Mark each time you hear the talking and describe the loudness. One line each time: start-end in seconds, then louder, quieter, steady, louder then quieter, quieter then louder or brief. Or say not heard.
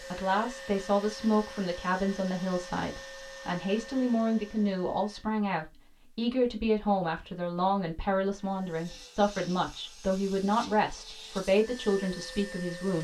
0.0-12.9 steady.